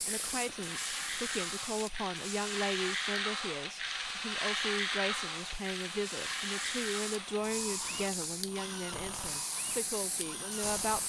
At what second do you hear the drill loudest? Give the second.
5 s.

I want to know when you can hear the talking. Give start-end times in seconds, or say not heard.
0.0-11.0.